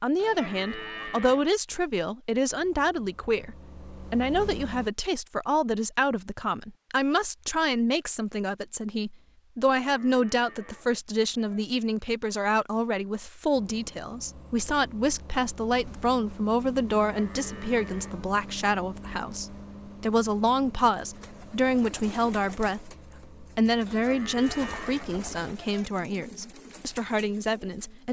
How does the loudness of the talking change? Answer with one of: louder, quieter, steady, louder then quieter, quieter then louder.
steady.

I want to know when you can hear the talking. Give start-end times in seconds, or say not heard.
0.0-28.0.